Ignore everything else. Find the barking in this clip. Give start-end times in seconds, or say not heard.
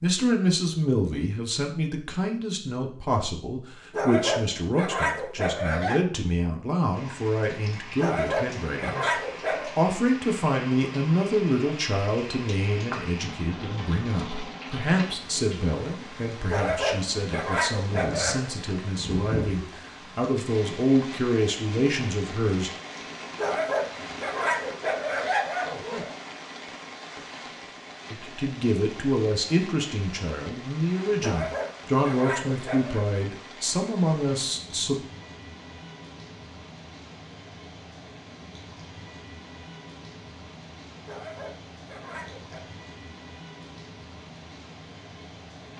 3.9-6.0, 8.0-9.7, 16.4-18.4, 23.4-26.1, 31.2-33.0, 41.0-42.6.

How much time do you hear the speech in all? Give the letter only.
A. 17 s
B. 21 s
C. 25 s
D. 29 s
D.